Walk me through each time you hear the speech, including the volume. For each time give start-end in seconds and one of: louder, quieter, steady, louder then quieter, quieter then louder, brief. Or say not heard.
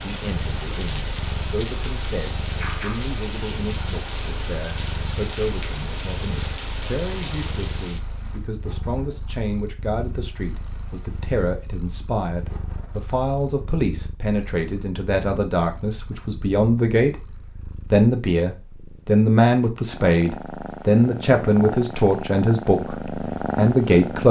0.0-17.1 louder
17.9-24.2 steady.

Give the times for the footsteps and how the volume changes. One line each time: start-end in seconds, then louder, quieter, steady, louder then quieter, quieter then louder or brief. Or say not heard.
not heard.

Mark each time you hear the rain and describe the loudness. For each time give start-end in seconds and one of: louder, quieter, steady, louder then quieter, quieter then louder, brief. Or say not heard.
0.0-13.2 quieter.